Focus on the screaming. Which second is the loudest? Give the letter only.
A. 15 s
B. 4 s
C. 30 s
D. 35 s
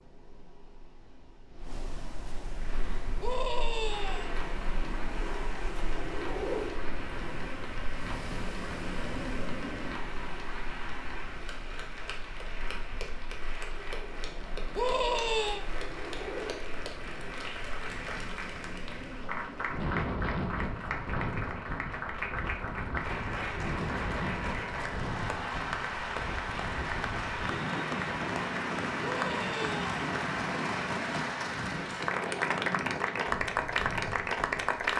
A.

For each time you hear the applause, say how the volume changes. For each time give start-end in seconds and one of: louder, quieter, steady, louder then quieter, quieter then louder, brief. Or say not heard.
2.5-34.9 louder.